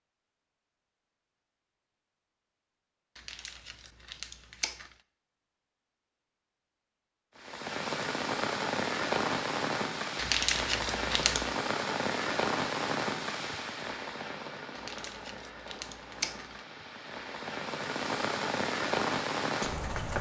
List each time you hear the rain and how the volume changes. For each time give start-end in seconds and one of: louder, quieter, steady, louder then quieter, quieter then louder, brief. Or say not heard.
7.3-20.1 quieter then louder.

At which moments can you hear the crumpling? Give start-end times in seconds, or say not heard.
3.1-5.0, 10.2-11.6, 14.8-16.6.